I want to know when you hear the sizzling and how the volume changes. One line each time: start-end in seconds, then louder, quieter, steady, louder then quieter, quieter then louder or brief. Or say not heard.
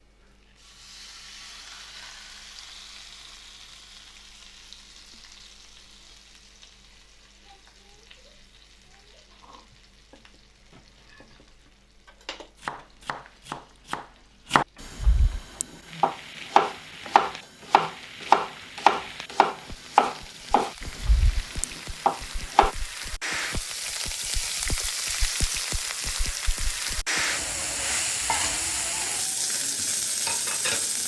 0.0-31.0 quieter then louder.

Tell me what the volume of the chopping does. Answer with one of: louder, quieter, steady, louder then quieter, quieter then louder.
louder then quieter.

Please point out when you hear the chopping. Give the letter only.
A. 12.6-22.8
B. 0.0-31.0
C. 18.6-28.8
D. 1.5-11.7
A.